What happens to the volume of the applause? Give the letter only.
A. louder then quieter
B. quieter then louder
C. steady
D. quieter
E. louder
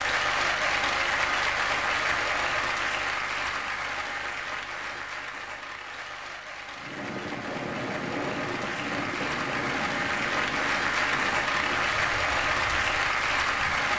B.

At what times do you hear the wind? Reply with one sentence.
The wind can be heard from 6.8 to 13.9 s.